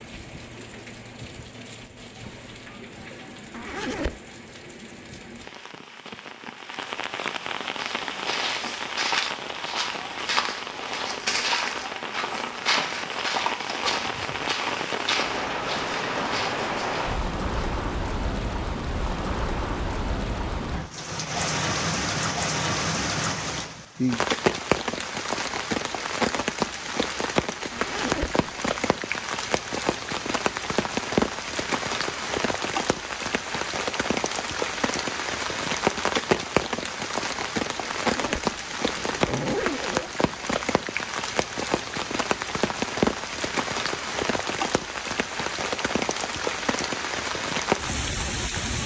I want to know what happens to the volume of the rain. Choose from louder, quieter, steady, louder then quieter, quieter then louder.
louder.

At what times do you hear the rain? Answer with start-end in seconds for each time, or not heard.
0.0-48.8.